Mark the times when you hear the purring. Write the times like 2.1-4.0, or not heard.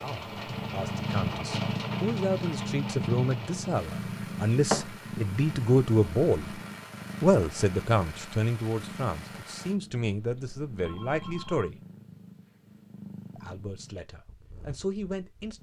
0.0-15.5.